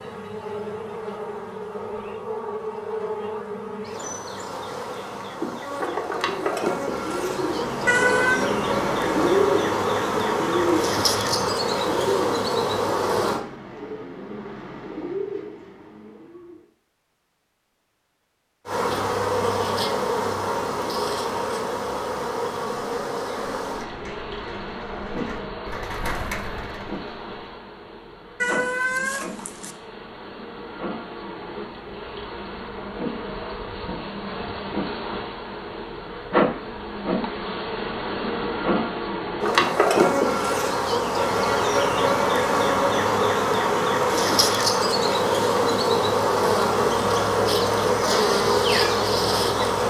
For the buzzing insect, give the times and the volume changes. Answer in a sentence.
The buzzing insect can be heard from 0.0 to 13.4 s, getting louder; and from 18.6 to 49.8 s, getting quieter then louder.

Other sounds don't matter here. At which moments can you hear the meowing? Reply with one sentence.
The meowing can be heard from 7.8 to 8.4 s and from 28.4 to 29.8 s.